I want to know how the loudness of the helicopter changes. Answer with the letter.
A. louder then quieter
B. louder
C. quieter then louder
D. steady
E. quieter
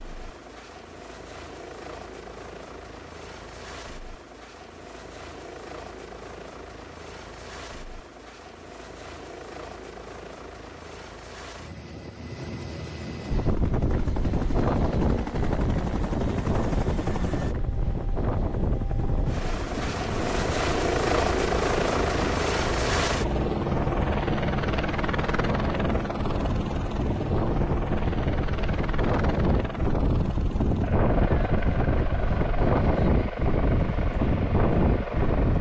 A.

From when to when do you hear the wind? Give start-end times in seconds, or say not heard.
13.3-35.5.